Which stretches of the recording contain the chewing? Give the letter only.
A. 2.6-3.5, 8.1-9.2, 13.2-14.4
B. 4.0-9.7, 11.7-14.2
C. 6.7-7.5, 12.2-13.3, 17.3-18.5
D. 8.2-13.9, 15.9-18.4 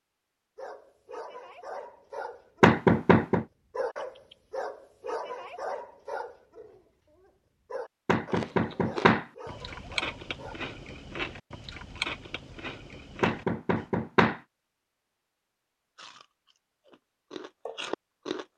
D.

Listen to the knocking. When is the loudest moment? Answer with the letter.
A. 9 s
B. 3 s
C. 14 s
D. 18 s
B.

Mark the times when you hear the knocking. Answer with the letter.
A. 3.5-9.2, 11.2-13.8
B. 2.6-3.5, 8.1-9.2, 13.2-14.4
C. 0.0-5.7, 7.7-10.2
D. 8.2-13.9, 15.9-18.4
B.